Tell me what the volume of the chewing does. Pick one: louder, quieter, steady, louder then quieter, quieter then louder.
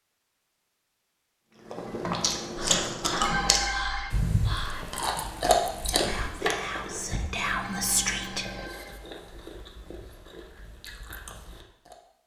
quieter.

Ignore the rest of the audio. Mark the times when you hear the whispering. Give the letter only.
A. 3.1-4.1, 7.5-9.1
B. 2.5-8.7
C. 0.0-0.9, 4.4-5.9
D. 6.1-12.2
B.